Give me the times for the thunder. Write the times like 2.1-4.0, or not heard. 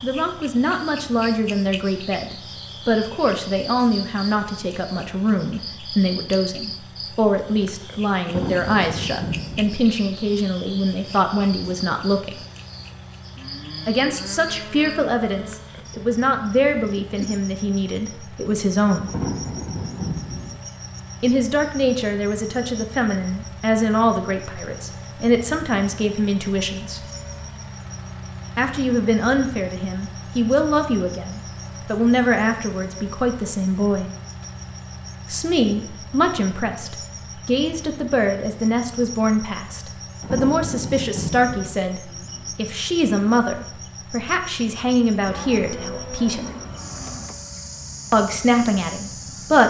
8.2-9.8, 19.1-20.6, 40.2-41.8.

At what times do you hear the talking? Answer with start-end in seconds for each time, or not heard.
0.0-12.3, 13.8-19.1, 21.2-27.1, 28.6-34.0, 35.2-46.5, 48.1-49.6.